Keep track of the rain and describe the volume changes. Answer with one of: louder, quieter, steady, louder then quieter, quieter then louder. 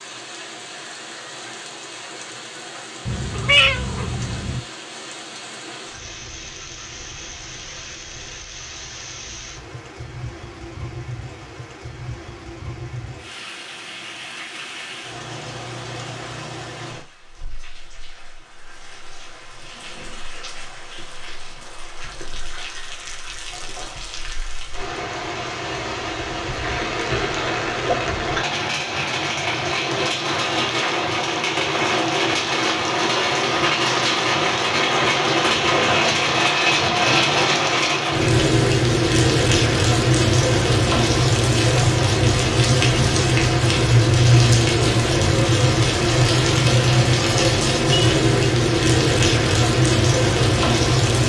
louder.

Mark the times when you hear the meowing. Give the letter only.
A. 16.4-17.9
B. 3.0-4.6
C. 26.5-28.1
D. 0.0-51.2
B.